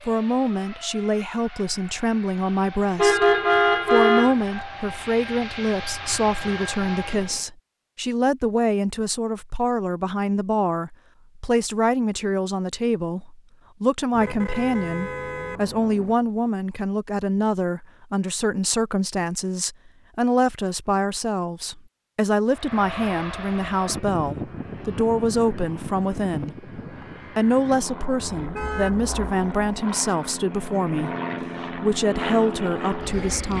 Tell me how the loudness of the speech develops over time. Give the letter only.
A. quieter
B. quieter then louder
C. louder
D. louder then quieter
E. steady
E.